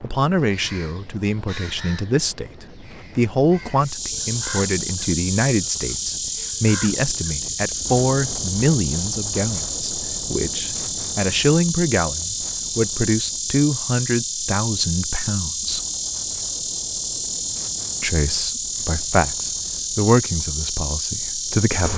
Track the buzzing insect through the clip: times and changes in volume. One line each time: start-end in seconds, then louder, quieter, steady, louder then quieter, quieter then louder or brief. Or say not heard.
3.8-21.9 steady.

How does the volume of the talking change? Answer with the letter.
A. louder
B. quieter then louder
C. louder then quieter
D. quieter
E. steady
E.